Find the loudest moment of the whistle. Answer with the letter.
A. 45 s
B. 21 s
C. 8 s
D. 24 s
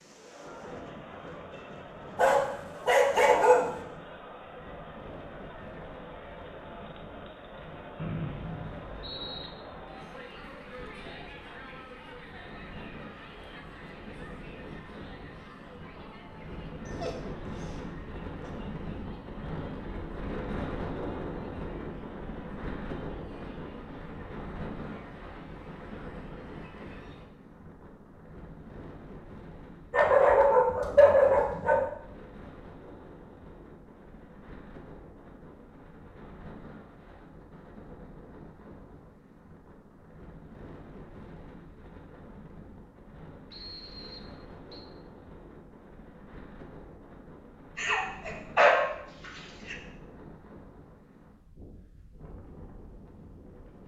C.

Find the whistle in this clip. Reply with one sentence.
You can hear the whistle from 8.0 to 9.5 s and from 43.5 to 44.9 s.